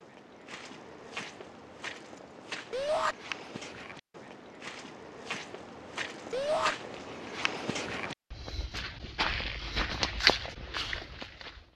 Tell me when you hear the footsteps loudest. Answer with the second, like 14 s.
10 s.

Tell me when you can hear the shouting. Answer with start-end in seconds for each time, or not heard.
2.7-3.1, 6.3-6.8.